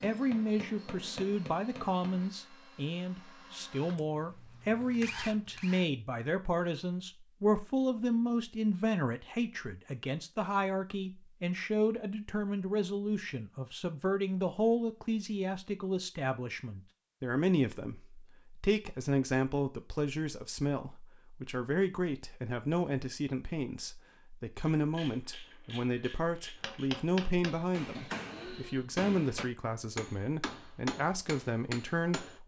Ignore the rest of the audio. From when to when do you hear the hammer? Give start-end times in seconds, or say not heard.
0.0-2.3, 26.6-32.4.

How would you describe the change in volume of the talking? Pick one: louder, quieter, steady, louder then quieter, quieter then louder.
steady.